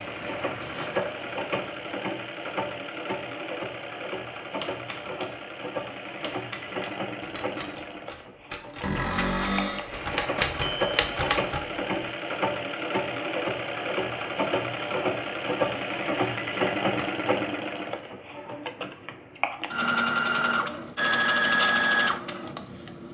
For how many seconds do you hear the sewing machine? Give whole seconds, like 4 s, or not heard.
23 s.